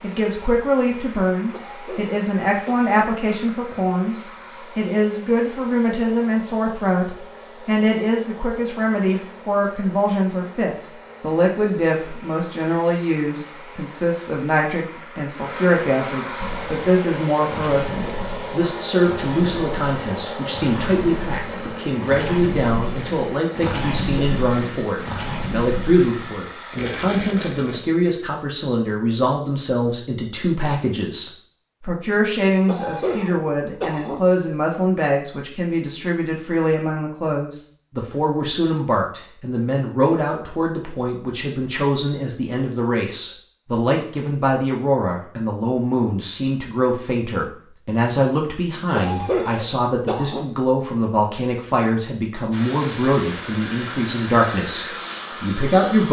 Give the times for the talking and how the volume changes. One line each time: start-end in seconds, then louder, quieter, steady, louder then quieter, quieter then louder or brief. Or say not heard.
0.0-56.0 steady.